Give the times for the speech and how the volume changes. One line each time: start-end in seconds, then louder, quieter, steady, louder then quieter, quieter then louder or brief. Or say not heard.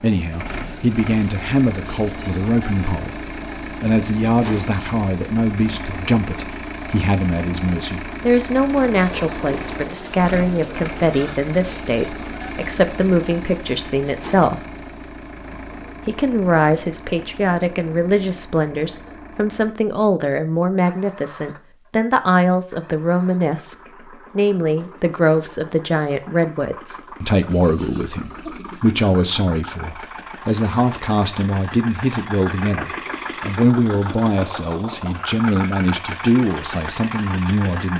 0.0-14.7 steady
16.1-23.8 steady
24.4-37.9 steady.